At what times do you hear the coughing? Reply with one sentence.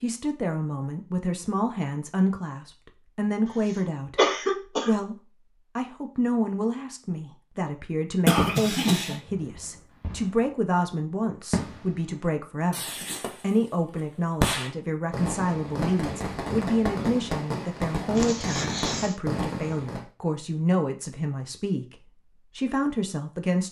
The coughing can be heard from 4.2 to 5.0 s, from 8.2 to 9.2 s and from 18.1 to 19.1 s.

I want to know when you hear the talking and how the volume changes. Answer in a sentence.
You can hear the talking from 0.0 to 23.6 s, at a steady volume.